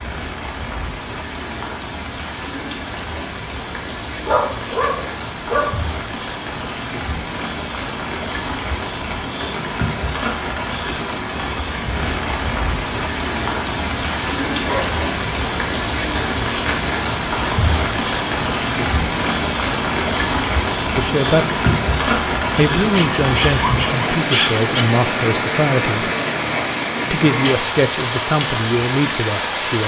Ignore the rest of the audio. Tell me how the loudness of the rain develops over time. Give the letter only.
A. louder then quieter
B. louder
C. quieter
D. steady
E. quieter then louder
B.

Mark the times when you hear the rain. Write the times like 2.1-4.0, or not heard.
0.0-29.8.